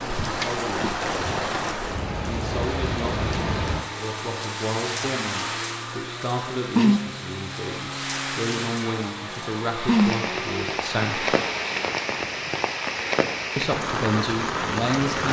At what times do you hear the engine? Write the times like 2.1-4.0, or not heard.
2.7-11.9.